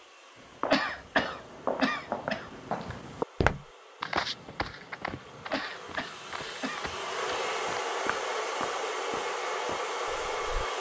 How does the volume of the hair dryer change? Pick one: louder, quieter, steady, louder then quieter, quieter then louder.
louder.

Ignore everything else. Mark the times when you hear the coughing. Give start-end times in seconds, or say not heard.
0.7-3.0, 5.5-6.8.